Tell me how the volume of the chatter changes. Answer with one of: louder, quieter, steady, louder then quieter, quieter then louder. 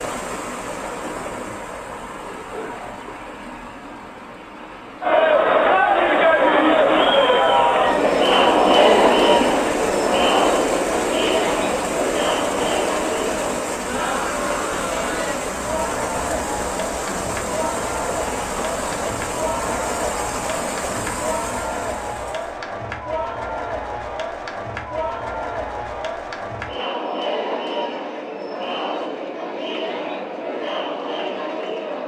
quieter.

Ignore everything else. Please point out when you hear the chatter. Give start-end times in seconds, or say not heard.
5.0-32.0.